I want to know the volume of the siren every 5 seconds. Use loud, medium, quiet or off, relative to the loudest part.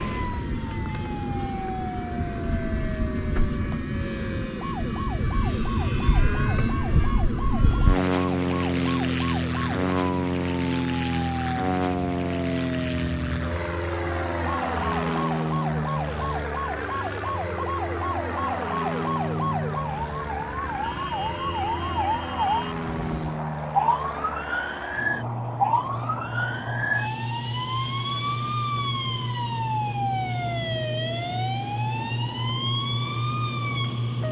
medium, medium, medium, loud, loud, loud, loud.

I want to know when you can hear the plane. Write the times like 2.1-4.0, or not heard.
0.0-34.2.